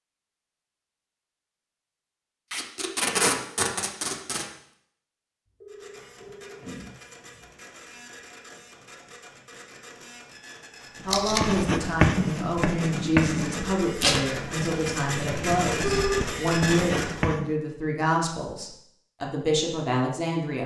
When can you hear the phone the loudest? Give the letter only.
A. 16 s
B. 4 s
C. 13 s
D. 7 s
A.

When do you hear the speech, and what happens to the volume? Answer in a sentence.
You can hear the speech from 11.1 to 20.6 s, at a steady volume.